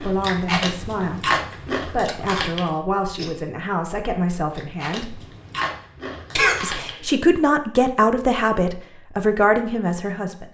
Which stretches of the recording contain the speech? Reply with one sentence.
The speech can be heard from 0.0 to 5.2 s and from 6.6 to 10.5 s.